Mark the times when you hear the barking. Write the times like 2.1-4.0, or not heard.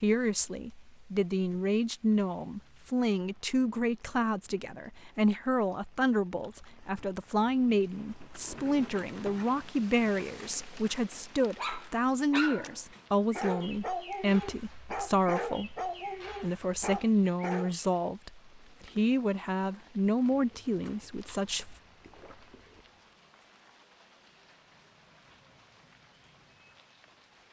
7.9-17.9.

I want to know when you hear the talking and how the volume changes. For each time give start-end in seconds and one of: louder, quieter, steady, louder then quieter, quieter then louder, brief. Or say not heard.
0.0-21.8 steady.